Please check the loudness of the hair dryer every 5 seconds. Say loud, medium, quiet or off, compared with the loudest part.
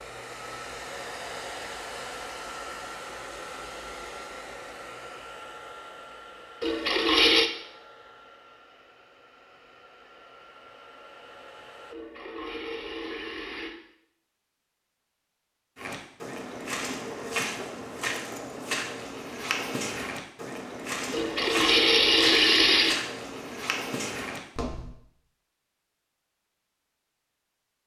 loud, medium, medium, off, off, off.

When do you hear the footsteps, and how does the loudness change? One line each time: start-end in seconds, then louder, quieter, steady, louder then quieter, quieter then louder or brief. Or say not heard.
15.8-24.9 steady.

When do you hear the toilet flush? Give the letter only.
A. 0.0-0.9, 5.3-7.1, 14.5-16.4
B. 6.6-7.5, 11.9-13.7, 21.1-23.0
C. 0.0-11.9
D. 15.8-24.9
B.